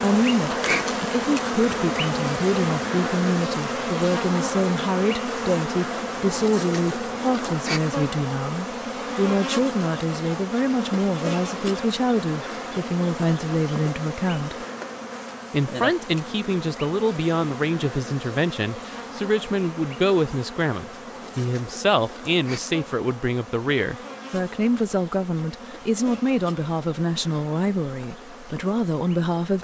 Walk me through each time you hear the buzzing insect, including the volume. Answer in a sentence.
You can hear the buzzing insect from 0.0 to 29.5 s, getting quieter.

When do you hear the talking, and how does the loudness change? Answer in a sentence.
You can hear the talking from 0.0 to 14.7 s, at a steady volume; and from 15.5 to 29.5 s, at a steady volume.